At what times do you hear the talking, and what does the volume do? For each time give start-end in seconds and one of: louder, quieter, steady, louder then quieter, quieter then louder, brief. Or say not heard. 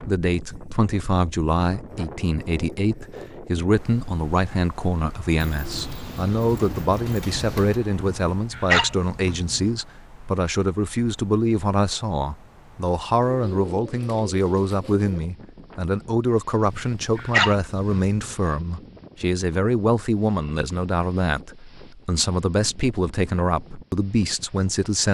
0.0-25.0 steady.